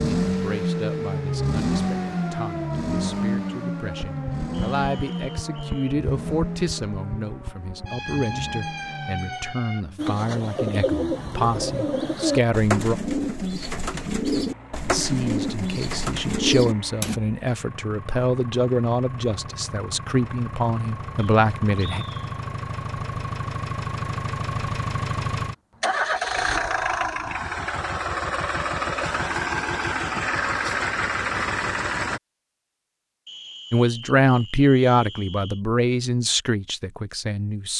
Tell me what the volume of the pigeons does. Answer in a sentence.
The volume of the pigeons stays about the same.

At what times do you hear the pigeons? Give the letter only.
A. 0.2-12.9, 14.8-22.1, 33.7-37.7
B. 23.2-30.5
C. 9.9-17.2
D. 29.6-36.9
C.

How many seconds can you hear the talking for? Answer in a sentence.
You can hear the talking for 24 seconds altogether.